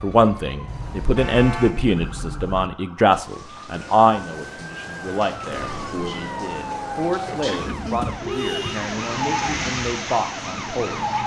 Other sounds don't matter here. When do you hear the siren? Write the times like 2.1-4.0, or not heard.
0.0-11.2.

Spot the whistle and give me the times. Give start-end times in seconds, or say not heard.
not heard.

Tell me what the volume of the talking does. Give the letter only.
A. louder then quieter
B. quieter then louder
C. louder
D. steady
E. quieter
E.